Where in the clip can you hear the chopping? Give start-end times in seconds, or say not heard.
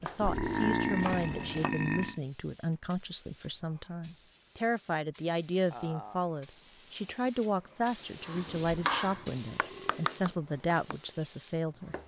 0.0-1.7, 8.2-12.0.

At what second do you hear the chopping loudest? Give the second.
9 s.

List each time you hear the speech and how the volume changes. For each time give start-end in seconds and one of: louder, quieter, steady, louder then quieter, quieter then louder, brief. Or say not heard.
0.0-11.9 steady.